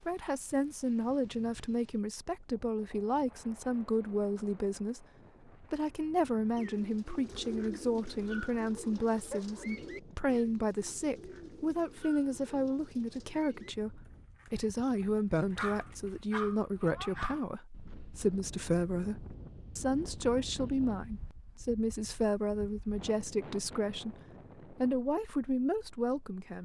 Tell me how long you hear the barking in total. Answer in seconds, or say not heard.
3 s.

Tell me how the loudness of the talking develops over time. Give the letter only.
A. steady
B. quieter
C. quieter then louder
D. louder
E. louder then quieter
A.